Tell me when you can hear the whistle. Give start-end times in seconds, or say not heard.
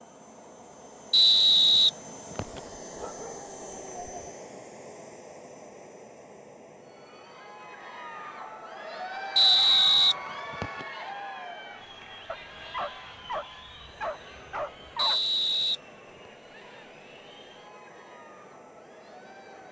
1.1-2.6, 9.3-10.8, 14.9-15.8.